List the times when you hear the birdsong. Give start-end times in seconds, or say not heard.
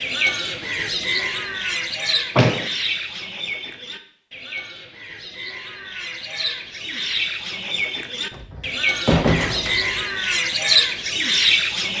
0.0-11.9.